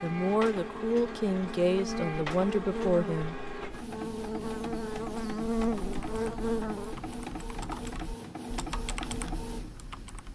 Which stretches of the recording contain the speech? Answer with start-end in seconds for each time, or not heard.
0.0-3.4.